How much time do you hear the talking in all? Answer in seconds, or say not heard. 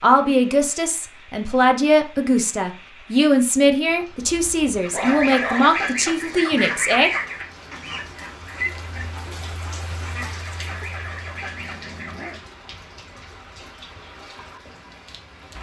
7 s.